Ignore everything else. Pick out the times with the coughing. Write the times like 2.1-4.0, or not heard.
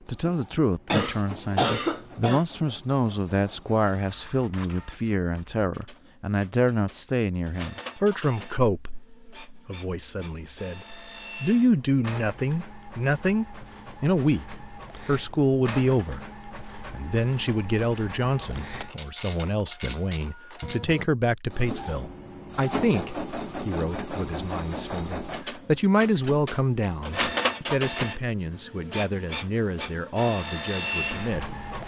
0.8-2.5.